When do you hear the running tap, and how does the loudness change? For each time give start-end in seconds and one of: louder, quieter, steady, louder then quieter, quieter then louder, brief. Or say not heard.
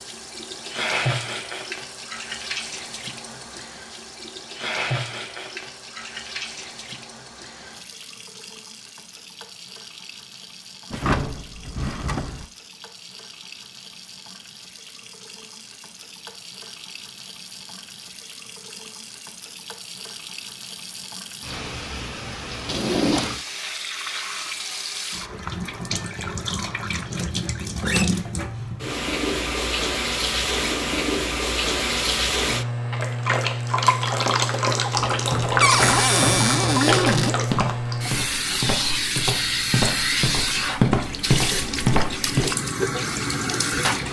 0.0-44.0 quieter then louder.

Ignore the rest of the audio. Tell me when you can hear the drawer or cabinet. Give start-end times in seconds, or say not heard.
10.9-12.4, 22.6-23.4, 35.6-37.4.